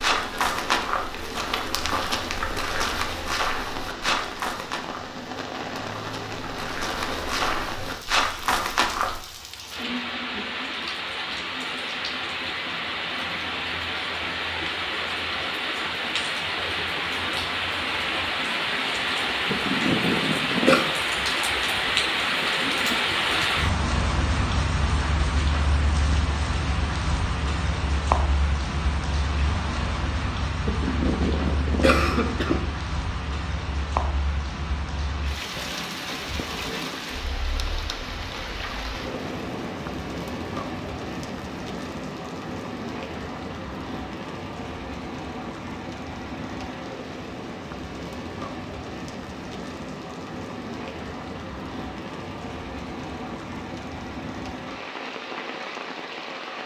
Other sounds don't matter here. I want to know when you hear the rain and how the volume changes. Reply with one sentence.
The rain can be heard from 0.0 to 56.6 s, getting louder then quieter.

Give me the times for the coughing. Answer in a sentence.
You can hear the coughing from 19.4 to 20.9 s and from 30.6 to 32.6 s.